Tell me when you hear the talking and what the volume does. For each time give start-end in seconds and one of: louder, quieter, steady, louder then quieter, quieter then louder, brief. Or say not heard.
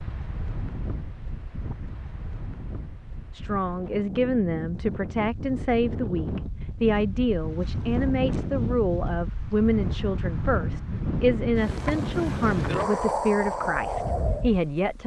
3.4-15.0 steady.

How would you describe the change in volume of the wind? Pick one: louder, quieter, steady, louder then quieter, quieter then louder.
louder.